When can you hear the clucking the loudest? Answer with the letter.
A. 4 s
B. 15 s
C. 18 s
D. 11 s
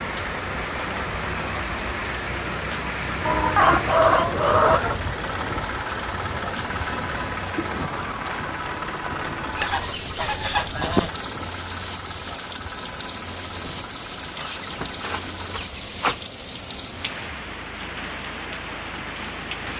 A.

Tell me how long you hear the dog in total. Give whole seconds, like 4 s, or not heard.
not heard.